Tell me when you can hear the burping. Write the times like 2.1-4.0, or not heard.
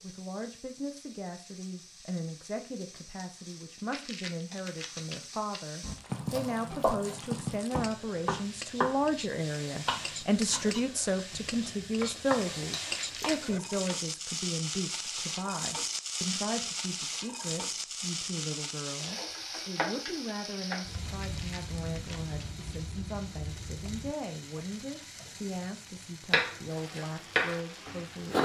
not heard.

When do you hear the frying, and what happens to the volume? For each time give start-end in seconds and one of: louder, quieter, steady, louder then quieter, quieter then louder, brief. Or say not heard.
0.0-28.3 louder then quieter.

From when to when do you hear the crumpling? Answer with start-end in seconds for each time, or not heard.
3.8-5.8, 12.9-14.1, 21.1-22.4.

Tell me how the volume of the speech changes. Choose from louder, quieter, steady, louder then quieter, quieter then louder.
louder then quieter.